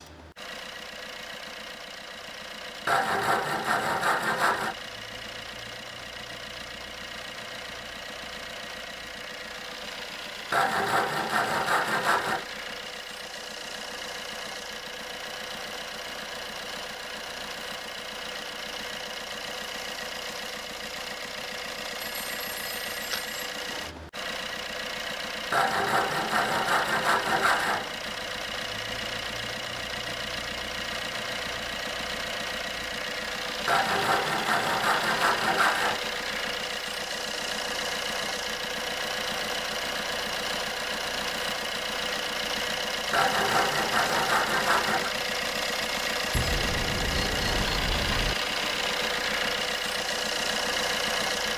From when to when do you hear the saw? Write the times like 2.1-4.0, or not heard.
2.9-4.8, 10.5-12.4, 25.5-28.1, 33.6-36.0, 43.1-45.1.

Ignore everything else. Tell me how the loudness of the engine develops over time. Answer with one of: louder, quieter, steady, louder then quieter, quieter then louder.
louder.